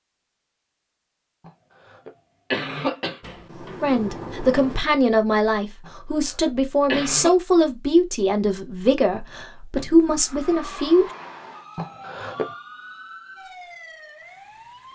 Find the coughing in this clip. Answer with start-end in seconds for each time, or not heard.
1.4-3.2, 5.8-7.3, 11.8-12.5.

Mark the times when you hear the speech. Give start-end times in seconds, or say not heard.
3.8-11.1.